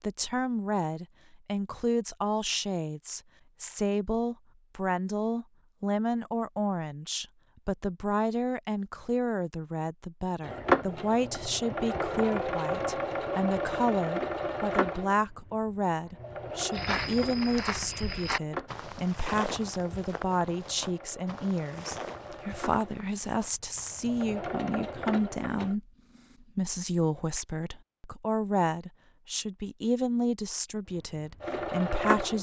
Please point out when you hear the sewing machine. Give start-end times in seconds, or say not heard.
10.4-25.8, 31.1-32.3.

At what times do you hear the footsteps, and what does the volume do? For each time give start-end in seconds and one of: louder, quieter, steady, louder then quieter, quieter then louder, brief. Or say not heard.
16.7-24.2 quieter.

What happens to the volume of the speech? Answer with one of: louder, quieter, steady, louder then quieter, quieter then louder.
steady.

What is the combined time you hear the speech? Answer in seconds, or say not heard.
32 s.